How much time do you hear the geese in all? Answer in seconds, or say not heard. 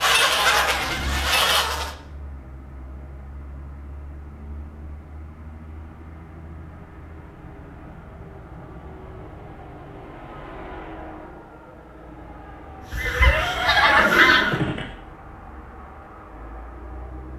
4 s.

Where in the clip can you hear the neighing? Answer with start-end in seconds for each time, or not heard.
13.1-14.9.